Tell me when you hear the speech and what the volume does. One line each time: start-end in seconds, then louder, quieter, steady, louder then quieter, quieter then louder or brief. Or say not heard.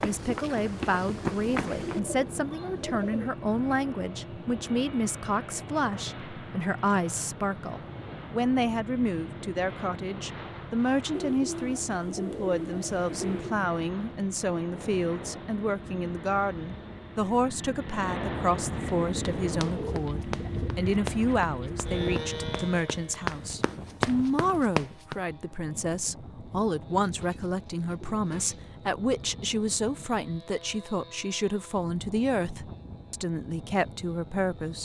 0.0-34.7 steady.